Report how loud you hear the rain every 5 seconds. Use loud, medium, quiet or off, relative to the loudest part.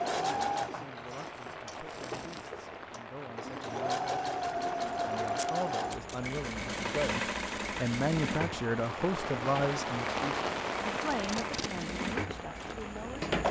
medium, loud, loud.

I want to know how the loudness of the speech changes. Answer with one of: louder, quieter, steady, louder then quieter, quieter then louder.
louder then quieter.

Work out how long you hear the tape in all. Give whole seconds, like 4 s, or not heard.
3 s.